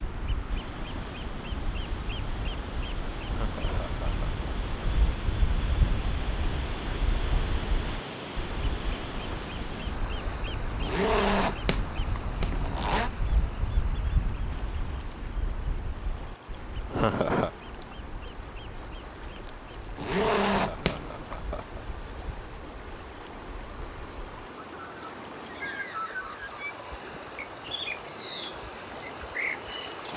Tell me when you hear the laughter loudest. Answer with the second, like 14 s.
17 s.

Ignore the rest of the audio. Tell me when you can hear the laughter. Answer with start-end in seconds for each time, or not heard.
3.2-4.4, 16.9-17.5, 20.1-21.9.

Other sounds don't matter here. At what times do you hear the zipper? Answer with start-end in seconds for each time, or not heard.
10.8-13.1, 19.9-21.4.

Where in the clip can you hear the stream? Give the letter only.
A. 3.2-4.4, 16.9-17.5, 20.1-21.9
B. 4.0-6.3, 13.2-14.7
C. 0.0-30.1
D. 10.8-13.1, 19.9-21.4
C.